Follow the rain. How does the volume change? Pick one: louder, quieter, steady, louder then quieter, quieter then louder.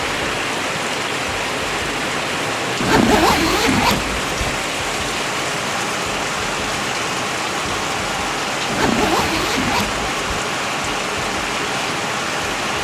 steady.